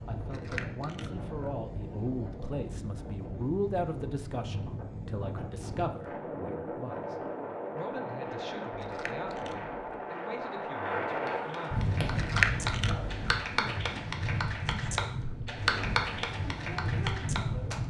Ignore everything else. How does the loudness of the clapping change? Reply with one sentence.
The loudness of the clapping goes up, then down.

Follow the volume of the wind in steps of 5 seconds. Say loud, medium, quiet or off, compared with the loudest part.
medium, loud, loud, loud.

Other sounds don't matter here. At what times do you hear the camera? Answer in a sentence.
You can hear the camera from 0.2 to 1.6 s, from 8.7 to 9.8 s and from 12.1 to 13.2 s.